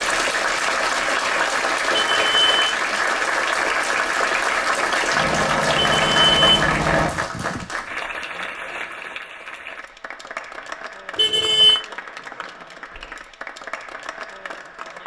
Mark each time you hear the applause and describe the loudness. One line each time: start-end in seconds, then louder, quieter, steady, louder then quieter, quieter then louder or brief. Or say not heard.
0.0-15.0 quieter.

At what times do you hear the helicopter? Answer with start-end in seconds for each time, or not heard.
5.1-7.2.